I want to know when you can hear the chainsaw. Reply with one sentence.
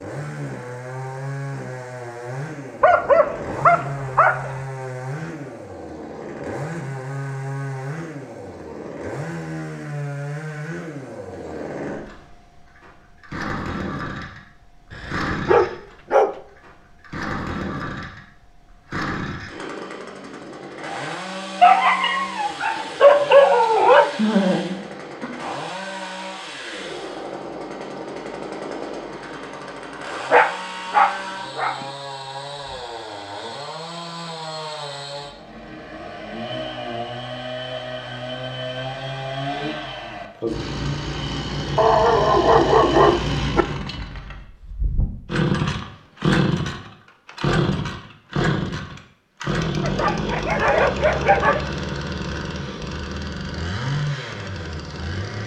The chainsaw can be heard from 0.0 to 55.4 s.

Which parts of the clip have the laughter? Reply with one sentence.
You can hear the laughter from 24.1 to 25.3 s.